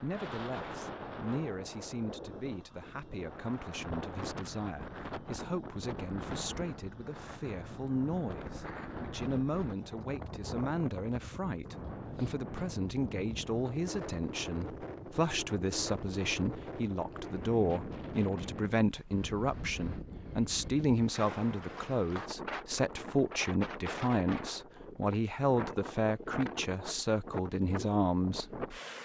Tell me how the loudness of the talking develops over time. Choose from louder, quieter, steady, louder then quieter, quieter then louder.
louder.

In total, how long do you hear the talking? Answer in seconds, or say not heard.
29 s.